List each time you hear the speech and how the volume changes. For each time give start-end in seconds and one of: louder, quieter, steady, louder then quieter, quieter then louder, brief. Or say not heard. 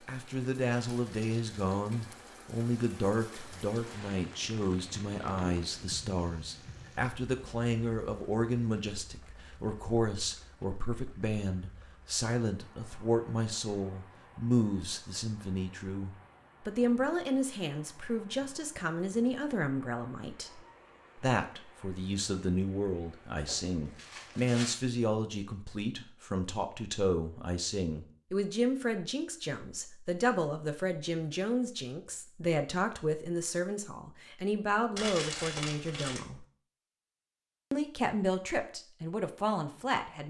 0.1-36.5 steady
37.7-40.2 brief.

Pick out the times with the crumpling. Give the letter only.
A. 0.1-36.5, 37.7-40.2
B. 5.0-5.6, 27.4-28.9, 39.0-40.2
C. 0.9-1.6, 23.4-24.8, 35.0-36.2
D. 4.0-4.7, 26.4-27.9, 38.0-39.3
C.